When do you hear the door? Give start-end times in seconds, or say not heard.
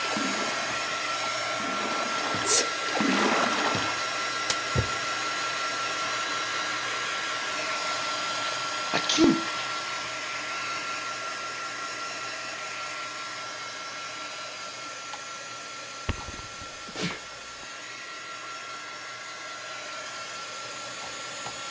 not heard.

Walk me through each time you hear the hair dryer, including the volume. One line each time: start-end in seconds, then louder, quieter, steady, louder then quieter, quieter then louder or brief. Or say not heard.
0.0-21.6 quieter.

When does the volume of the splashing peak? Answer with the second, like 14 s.
3 s.